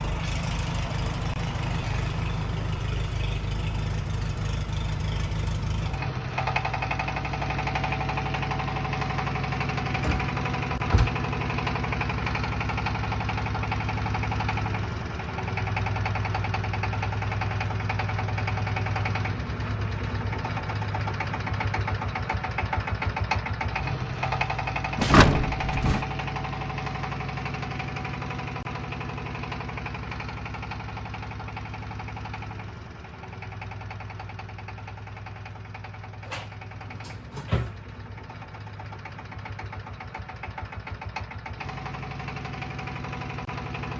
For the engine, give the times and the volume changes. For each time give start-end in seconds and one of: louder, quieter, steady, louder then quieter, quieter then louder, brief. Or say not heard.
0.0-43.9 quieter.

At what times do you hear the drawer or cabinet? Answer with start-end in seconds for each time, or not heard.
9.9-11.1, 24.9-26.0, 36.2-37.8.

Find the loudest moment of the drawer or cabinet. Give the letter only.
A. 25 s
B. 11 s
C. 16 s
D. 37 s
A.